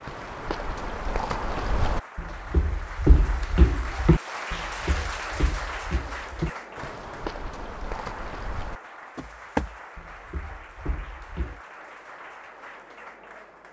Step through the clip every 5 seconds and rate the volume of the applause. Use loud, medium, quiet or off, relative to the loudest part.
loud, loud, medium.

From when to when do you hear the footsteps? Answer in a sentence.
The footsteps can be heard from 0.0 to 11.6 s.